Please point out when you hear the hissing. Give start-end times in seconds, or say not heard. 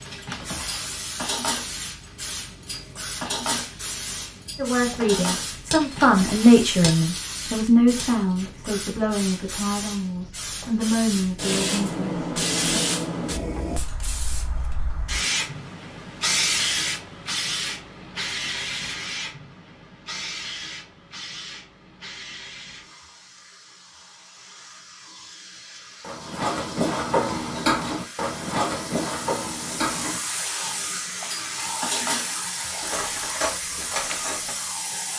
0.0-35.1.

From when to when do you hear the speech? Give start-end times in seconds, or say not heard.
4.5-12.8.